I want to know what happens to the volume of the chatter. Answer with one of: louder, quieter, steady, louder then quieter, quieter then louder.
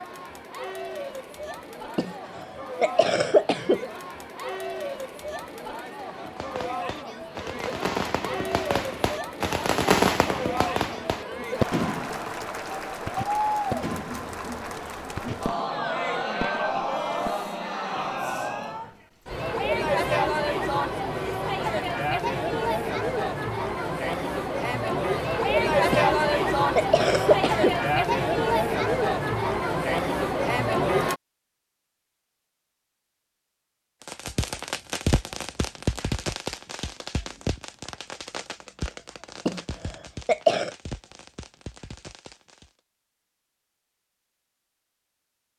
louder.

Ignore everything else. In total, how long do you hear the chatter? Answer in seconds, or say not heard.
31 s.